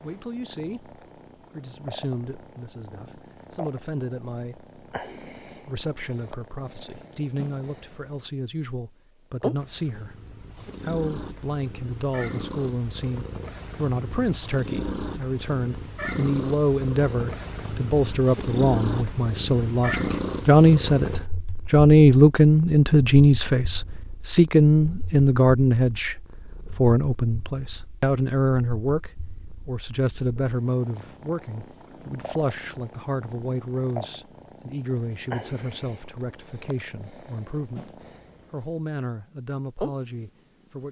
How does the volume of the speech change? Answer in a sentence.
The volume of the speech goes up, then down.